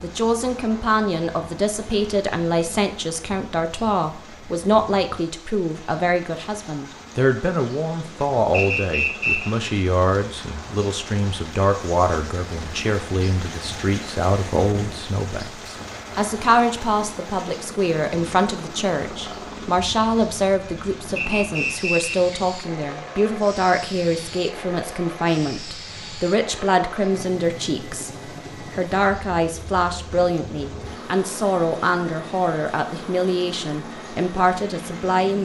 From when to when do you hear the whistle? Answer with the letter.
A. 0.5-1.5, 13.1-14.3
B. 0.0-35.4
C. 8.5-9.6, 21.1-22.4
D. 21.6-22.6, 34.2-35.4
C.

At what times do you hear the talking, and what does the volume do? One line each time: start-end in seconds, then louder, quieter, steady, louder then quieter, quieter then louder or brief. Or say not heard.
0.0-35.4 steady.